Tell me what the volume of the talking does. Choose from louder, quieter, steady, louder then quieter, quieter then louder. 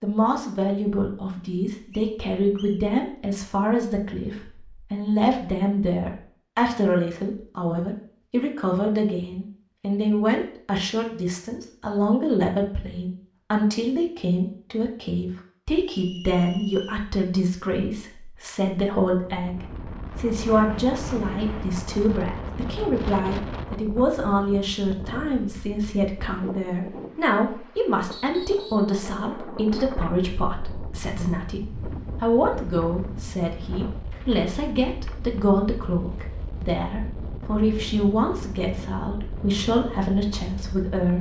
steady.